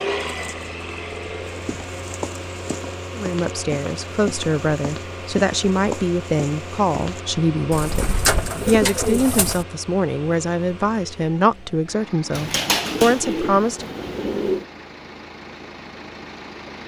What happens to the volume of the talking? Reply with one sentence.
The loudness of the talking stays about the same.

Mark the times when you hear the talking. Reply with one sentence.
You can hear the talking from 3.1 to 13.9 s.